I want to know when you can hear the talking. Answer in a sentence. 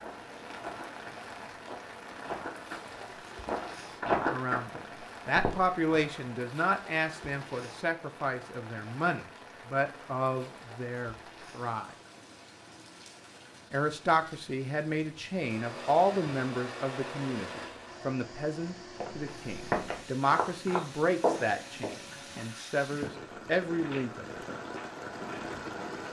You can hear the talking from 4.2 to 11.9 s and from 13.7 to 24.4 s.